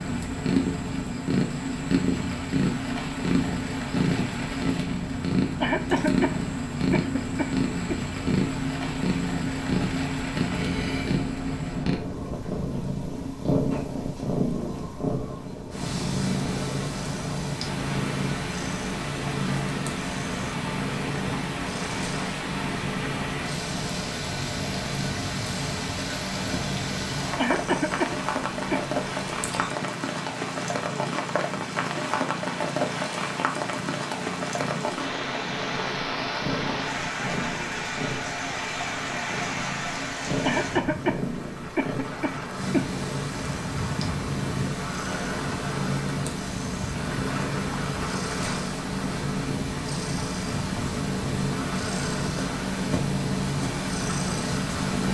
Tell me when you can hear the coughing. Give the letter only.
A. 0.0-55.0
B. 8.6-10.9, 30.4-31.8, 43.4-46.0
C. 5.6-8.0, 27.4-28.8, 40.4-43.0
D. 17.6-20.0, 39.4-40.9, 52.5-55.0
C.